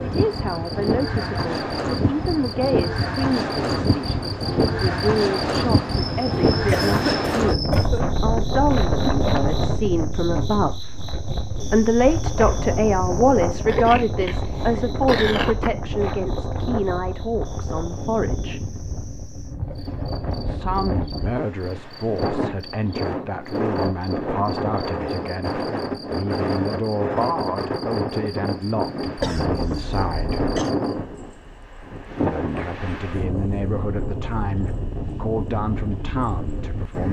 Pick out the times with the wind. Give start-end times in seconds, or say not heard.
0.0-37.0.